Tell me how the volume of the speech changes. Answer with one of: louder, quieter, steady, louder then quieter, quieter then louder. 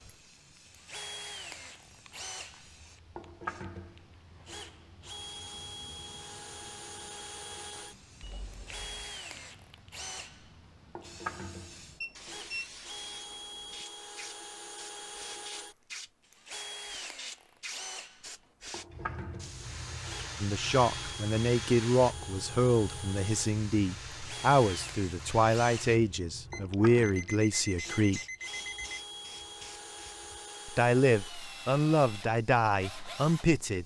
steady.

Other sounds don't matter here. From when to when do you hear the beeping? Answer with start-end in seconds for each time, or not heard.
8.2-9.2, 12.0-12.7, 26.5-29.1.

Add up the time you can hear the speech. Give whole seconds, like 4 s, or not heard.
11 s.